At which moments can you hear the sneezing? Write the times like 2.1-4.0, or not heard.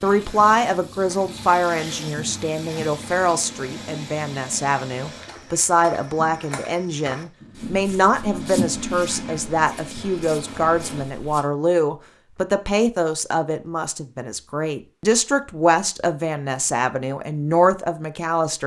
not heard.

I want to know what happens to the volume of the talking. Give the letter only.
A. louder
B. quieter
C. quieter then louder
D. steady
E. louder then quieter
D.